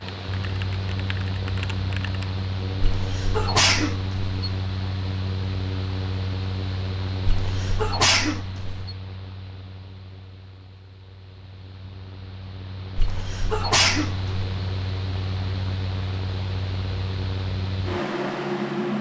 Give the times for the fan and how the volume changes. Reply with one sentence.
You can hear the fan from 0.0 to 18.9 s, getting quieter then louder.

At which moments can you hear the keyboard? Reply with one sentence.
The keyboard can be heard from 0.1 to 2.4 s.